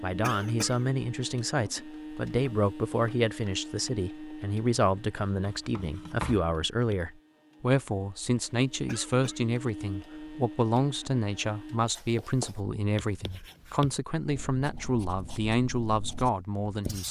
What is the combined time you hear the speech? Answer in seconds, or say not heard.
17 s.